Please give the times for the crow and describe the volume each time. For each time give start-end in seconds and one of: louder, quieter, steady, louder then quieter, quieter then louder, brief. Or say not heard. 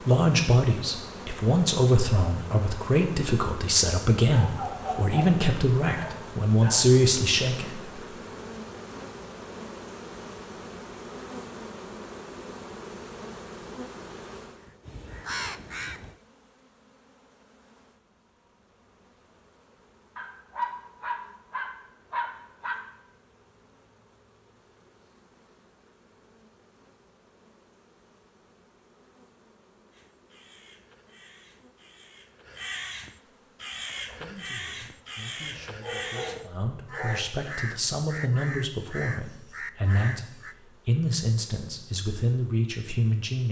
14.5-16.1 brief
29.9-40.5 louder.